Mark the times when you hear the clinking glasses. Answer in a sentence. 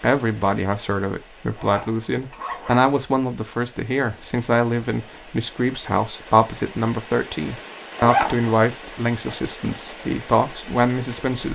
The clinking glasses can't be heard in this clip.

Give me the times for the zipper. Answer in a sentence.
The zipper can be heard from 1.6 to 2.9 s and from 8.0 to 8.6 s.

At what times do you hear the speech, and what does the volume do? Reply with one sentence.
You can hear the speech from 0.0 to 11.4 s, at a steady volume.